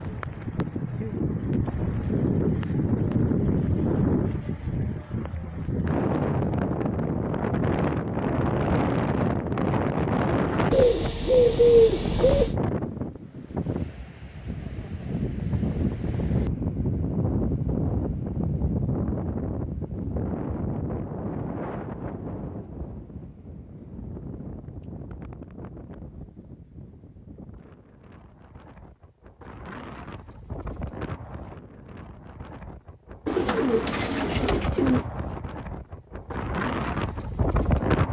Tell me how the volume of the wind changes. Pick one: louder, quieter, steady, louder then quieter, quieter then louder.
quieter then louder.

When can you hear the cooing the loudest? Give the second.
12 s.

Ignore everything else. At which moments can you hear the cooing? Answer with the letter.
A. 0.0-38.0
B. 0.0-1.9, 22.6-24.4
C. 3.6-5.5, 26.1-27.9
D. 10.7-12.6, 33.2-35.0
D.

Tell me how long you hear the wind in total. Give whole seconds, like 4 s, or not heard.
38 s.